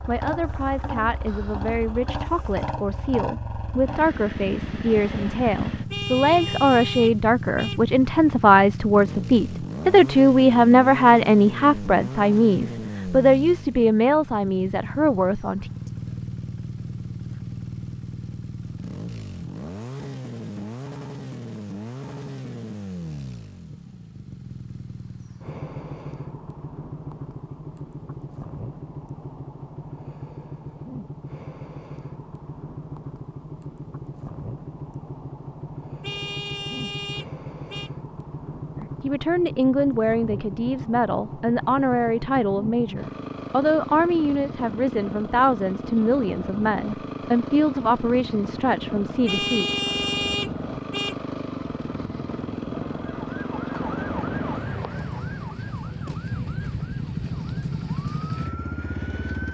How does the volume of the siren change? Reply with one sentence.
The loudness of the siren goes down, then up.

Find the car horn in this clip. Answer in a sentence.
The car horn can be heard from 5.9 to 7.8 s, from 36.0 to 37.9 s and from 49.2 to 51.1 s.